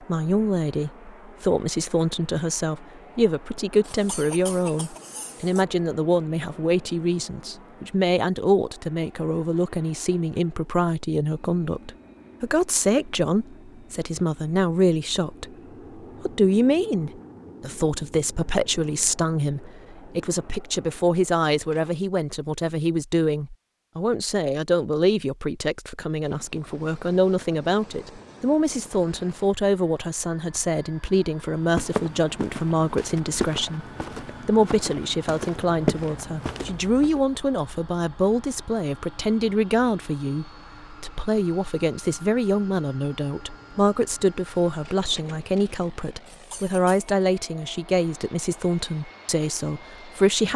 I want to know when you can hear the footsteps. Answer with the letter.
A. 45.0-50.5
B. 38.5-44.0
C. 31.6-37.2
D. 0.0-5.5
C.